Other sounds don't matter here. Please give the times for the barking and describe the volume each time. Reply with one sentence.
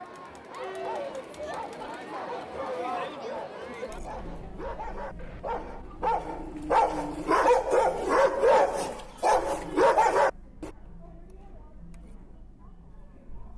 The barking can be heard from 0.7 to 10.7 s, getting louder.